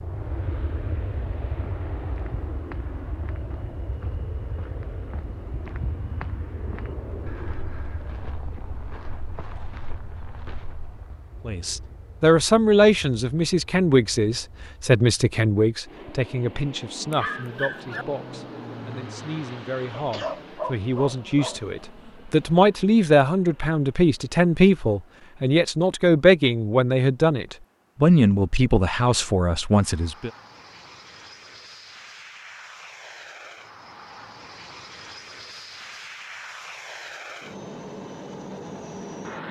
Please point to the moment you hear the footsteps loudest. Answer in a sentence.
The volume of the footsteps peaks at 6 seconds.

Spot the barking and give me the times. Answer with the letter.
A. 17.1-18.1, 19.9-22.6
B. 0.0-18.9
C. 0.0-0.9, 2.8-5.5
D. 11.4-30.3
A.